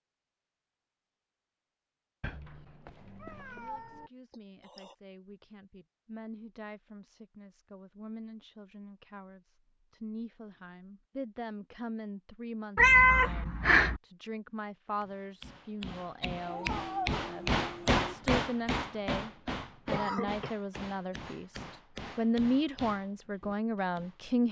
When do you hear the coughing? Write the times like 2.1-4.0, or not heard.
4.3-5.0, 19.9-20.6.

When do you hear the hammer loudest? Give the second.
18 s.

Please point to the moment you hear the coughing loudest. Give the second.
20 s.